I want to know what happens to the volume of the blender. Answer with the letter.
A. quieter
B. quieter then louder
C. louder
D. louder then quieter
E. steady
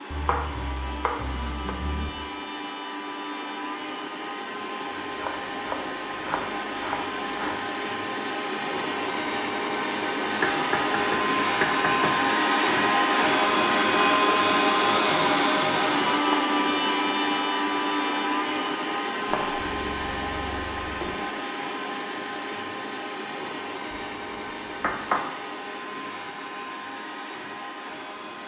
D.